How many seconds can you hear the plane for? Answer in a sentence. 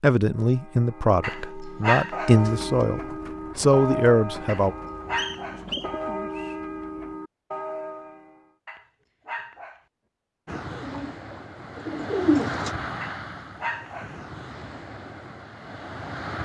You can hear the plane for 6 seconds altogether.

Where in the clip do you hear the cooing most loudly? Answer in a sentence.
The loudest moment of the cooing is at 12 seconds.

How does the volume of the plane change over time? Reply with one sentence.
The volume of the plane goes up, then down.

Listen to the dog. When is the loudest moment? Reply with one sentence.
The loudest moment of the dog is at 2 seconds.